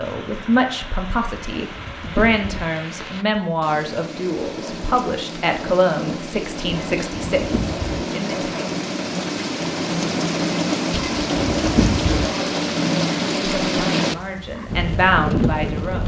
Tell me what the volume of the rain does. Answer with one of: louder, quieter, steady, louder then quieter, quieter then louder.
louder.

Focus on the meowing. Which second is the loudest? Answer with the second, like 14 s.
12 s.